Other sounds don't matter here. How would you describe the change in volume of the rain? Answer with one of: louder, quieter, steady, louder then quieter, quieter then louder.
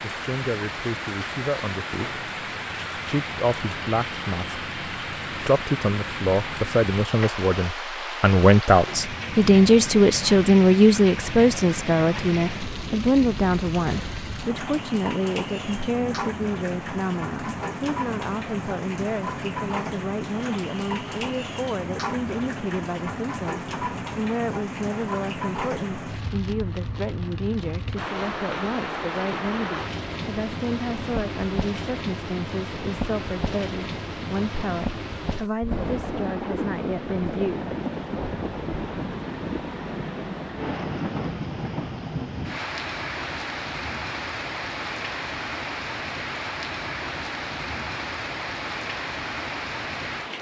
steady.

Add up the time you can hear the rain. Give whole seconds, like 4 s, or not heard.
50 s.